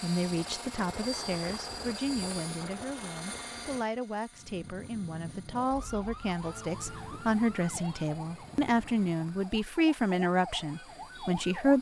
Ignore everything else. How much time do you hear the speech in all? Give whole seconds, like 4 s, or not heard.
12 s.